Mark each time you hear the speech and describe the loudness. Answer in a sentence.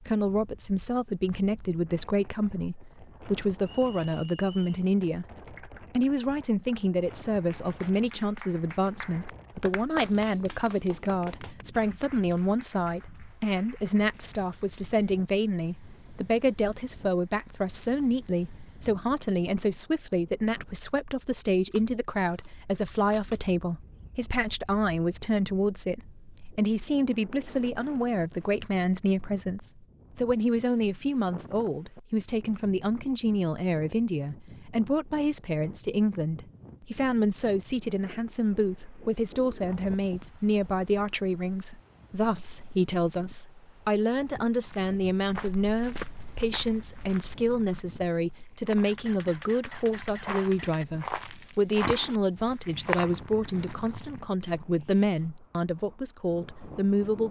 The speech can be heard from 0.1 to 57.2 s, at a steady volume.